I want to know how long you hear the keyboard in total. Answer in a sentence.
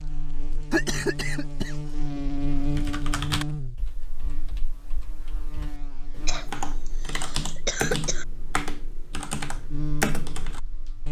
The keyboard can be heard for 8 seconds in total.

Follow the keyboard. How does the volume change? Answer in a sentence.
The loudness of the keyboard goes down, then up.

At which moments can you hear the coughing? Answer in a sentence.
You can hear the coughing from 0.7 to 2.2 s and from 6.2 to 8.2 s.